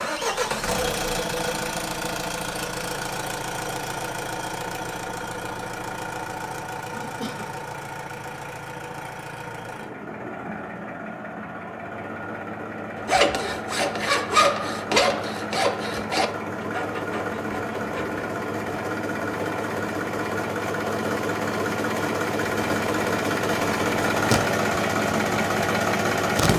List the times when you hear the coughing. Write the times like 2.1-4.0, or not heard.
6.9-7.5.